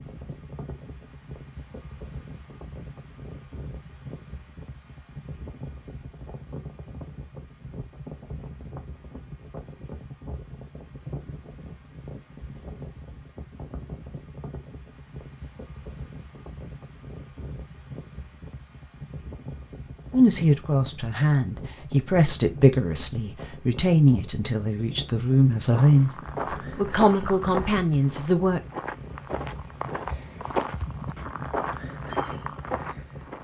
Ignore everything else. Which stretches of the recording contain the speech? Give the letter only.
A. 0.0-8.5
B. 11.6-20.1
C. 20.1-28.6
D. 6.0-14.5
C.